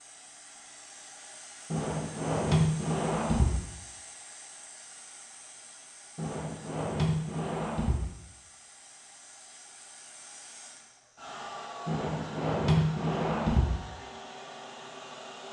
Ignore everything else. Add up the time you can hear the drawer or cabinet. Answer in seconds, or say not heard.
6 s.